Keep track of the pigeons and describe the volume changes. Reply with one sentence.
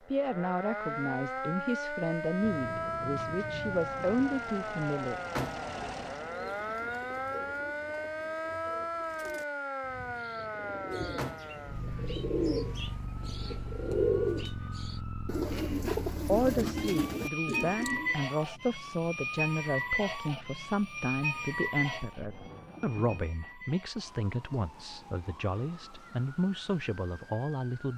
The volume of the pigeons goes up.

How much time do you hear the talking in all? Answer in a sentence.
The talking can be heard for 17 seconds in total.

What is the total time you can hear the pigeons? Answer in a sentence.
The pigeons can be heard for 12 seconds in total.